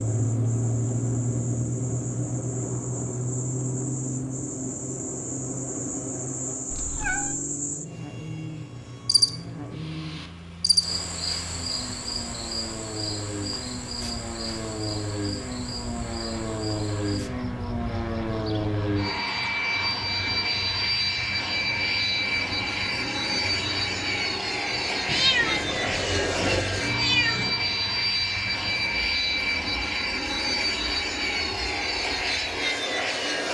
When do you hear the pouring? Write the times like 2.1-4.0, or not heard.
not heard.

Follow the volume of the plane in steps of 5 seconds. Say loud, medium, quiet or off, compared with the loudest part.
loud, medium, medium, loud, loud, loud, loud.